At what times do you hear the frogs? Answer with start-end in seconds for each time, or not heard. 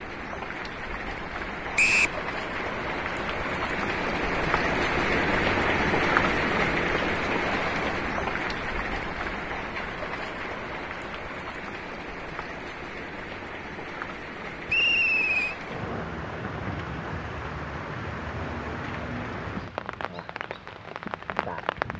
not heard.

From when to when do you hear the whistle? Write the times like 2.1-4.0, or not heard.
1.8-2.2, 14.7-15.6.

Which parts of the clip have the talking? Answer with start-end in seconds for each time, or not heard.
not heard.